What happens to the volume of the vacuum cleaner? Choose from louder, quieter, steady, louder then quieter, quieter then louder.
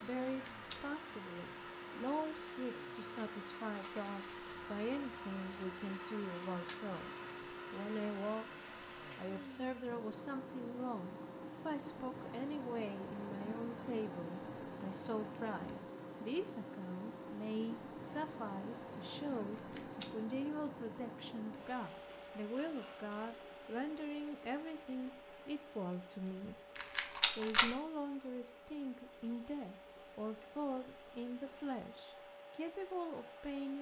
quieter.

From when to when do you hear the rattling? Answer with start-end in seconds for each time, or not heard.
0.2-0.8, 19.5-20.1, 26.8-27.7.